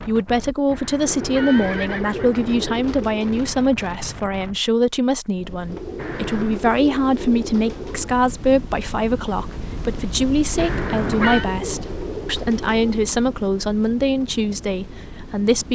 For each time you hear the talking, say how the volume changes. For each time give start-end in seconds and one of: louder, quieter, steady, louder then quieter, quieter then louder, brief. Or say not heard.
0.0-15.7 steady.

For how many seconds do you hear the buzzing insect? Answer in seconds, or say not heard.
not heard.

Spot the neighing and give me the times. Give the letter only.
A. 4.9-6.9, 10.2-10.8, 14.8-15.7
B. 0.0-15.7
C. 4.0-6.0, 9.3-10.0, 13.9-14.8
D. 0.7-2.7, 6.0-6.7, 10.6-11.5
D.